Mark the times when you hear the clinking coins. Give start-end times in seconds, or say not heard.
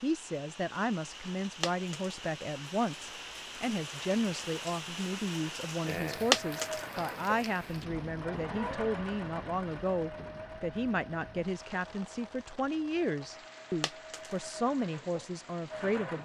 1.6-2.1, 6.3-6.8, 13.8-14.3.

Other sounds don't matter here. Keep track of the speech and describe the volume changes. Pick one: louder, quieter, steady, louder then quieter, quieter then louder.
steady.